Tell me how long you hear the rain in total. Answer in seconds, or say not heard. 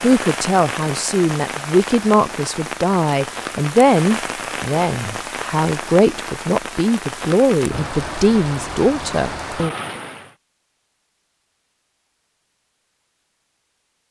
10 s.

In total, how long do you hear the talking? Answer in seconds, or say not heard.
10 s.